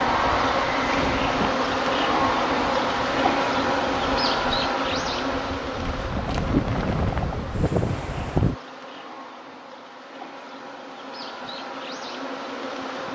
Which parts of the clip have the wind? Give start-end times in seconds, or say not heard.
0.0-8.6.